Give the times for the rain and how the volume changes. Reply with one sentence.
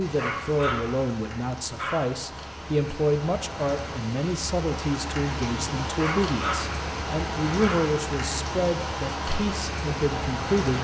You can hear the rain from 0.0 to 10.7 s, getting louder.